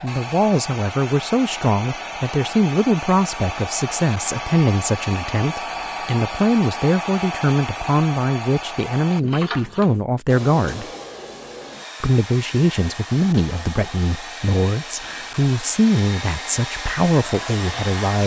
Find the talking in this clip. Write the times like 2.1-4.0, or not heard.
0.0-10.8, 12.0-18.2.